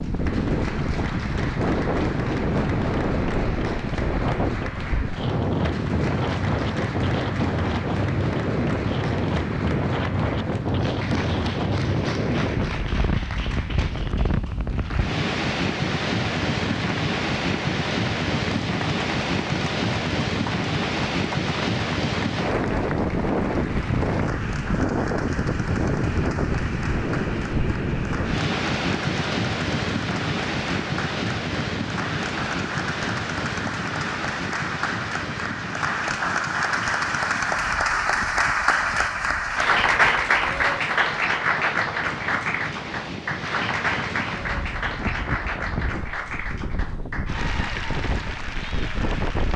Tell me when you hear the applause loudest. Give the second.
40 s.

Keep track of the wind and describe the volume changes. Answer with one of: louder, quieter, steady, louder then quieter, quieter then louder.
quieter.